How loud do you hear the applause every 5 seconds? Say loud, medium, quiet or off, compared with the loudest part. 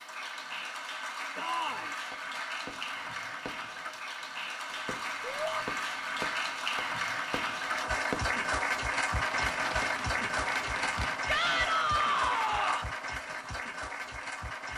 medium, loud, loud.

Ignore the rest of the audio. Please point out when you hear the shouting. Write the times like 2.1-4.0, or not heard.
1.4-1.9, 5.2-5.7, 11.2-12.9.